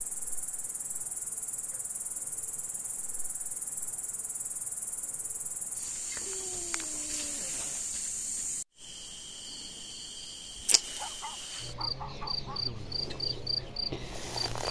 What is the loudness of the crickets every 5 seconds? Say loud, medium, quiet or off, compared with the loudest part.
medium, loud, loud.